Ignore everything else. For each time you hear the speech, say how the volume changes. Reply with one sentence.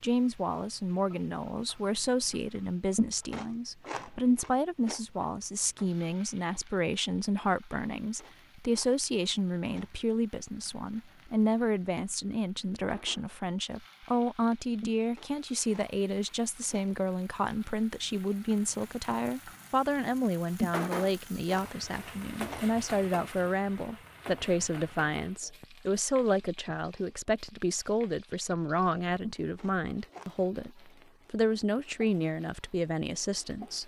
The speech can be heard from 0.0 to 33.8 s, at a steady volume.